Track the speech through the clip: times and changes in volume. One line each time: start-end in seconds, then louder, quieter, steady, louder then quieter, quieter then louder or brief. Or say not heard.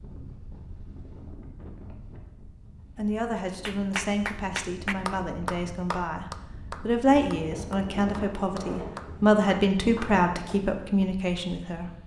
3.0-11.9 louder.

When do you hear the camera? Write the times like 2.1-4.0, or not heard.
not heard.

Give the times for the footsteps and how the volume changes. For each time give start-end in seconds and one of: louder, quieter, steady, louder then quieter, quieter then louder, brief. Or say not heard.
not heard.